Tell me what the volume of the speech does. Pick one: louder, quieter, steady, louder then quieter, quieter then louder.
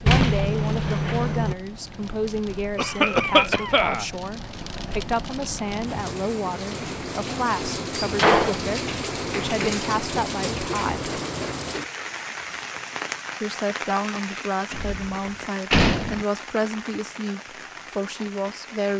steady.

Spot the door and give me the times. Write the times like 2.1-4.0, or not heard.
0.1-1.6, 8.0-8.6, 14.7-16.2.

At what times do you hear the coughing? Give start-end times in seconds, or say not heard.
2.8-4.0.